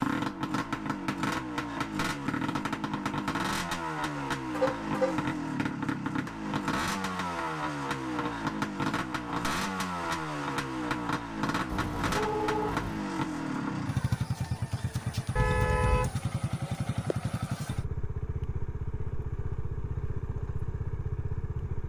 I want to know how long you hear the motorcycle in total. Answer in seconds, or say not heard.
22 s.